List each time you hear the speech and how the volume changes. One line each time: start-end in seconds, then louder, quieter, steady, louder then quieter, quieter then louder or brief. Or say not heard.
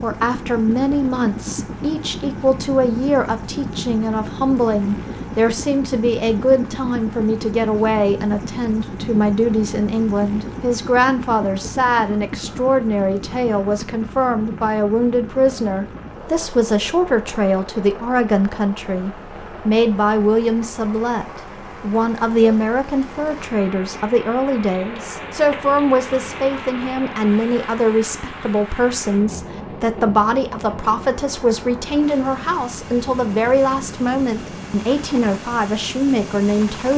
0.0-36.9 steady.